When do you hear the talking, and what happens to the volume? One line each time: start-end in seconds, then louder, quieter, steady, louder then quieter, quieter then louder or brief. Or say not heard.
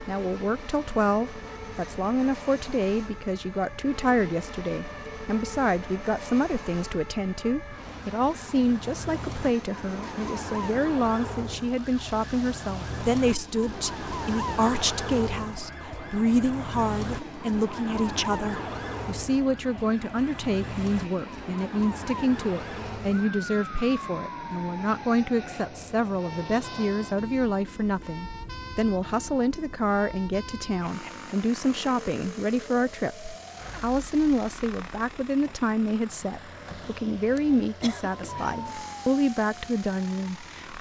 0.1-40.7 steady.